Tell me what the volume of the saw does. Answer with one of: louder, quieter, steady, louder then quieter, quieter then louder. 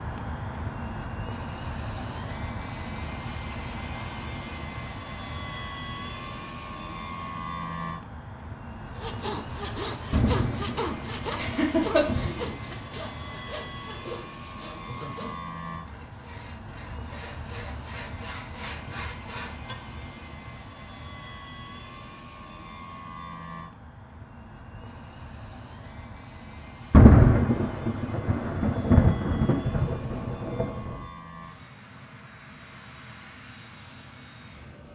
quieter then louder.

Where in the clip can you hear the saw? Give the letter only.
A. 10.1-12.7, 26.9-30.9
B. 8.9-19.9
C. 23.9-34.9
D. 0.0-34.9
B.